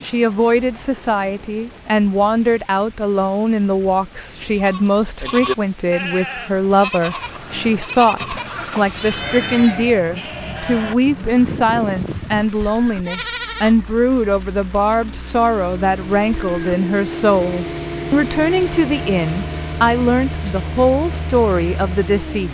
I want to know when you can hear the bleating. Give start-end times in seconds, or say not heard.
4.5-13.9.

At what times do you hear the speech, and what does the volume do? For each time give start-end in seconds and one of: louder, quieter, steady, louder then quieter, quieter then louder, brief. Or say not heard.
0.0-22.5 steady.